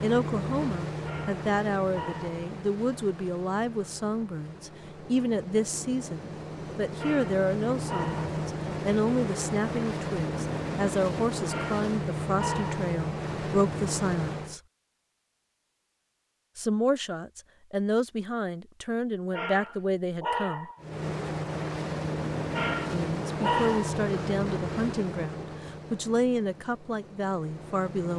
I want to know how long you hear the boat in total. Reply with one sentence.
The boat can be heard for 22 seconds in total.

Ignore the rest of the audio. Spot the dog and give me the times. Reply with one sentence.
The dog can be heard from 1.0 to 2.4 s, from 7.0 to 8.3 s, from 11.4 to 12.9 s, from 19.3 to 20.8 s and from 22.5 to 24.0 s.